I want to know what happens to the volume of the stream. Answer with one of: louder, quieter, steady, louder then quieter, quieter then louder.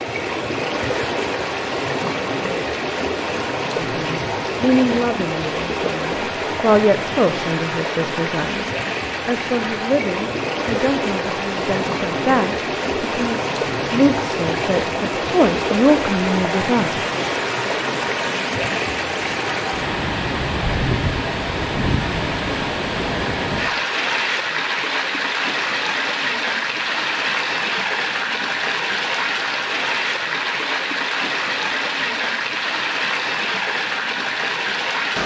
steady.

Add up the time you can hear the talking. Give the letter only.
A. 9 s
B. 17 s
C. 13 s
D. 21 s
C.